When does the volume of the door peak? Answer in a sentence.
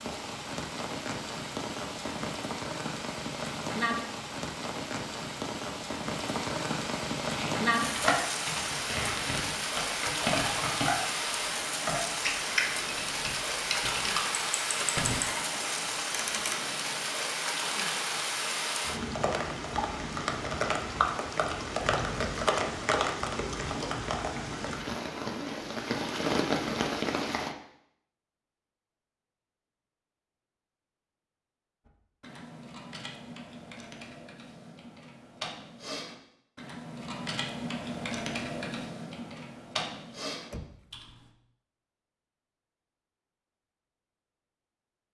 The loudest moment of the door is at 15 seconds.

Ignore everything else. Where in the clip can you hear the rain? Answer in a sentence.
You can hear the rain from 0.0 to 27.6 s.